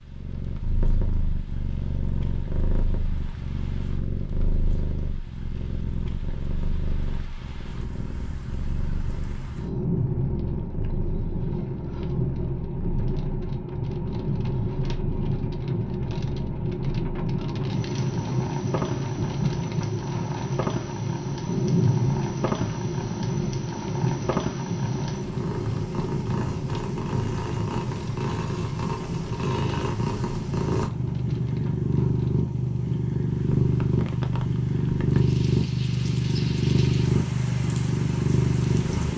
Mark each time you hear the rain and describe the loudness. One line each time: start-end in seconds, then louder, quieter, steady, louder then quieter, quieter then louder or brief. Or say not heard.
0.0-39.1 louder then quieter.